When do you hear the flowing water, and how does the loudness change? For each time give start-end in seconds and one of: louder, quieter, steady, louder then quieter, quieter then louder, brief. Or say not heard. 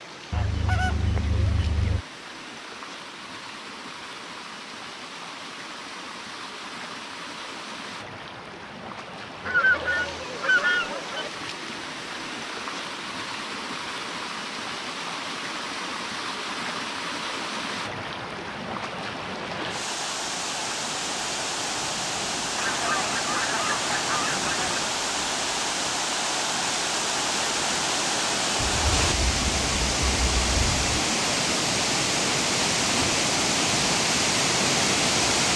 0.0-35.5 louder.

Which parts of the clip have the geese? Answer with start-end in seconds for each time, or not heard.
0.3-2.0, 9.4-11.3, 22.6-24.8, 28.6-30.9.